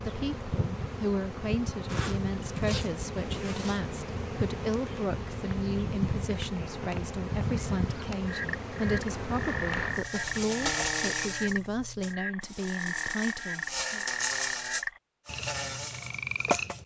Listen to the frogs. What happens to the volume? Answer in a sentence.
The loudness of the frogs stays about the same.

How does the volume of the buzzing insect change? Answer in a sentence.
The volume of the buzzing insect stays about the same.